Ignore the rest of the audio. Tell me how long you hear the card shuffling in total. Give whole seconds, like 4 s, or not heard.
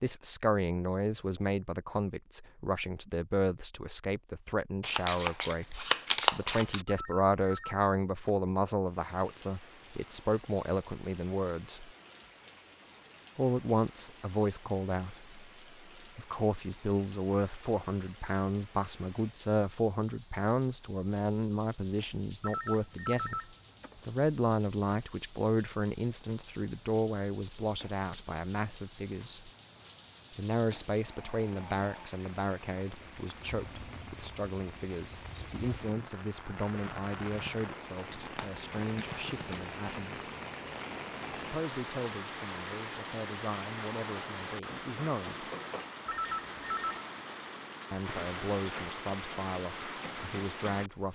4 s.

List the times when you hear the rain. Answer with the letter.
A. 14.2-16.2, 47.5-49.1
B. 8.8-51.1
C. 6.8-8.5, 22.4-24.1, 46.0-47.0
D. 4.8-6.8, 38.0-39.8
B.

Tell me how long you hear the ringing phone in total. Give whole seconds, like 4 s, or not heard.
4 s.